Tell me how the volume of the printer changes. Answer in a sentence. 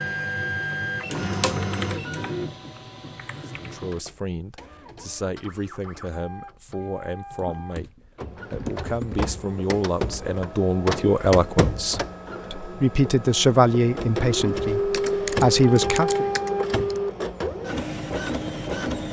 The volume of the printer goes down, then up.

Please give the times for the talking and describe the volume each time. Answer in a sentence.
You can hear the talking from 3.5 to 16.3 s, getting louder.